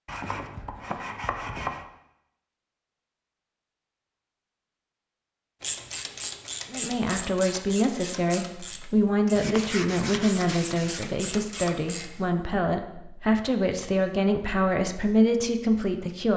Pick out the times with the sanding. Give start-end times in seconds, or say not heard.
0.1-1.9, 9.3-11.1.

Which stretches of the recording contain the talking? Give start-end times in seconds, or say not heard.
6.7-16.3.